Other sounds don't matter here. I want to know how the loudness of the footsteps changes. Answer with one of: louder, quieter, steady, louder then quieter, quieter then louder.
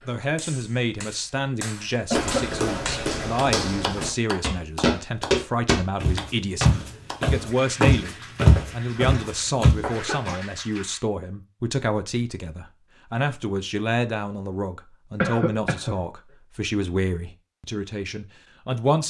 louder.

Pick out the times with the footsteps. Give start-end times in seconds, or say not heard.
2.1-10.3.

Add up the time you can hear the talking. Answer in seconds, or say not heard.
19 s.